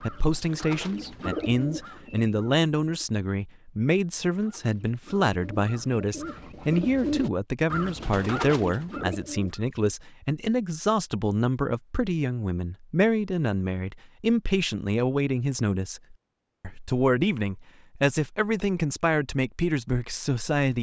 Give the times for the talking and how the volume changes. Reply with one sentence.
You can hear the talking from 0.0 to 20.7 s, at a steady volume.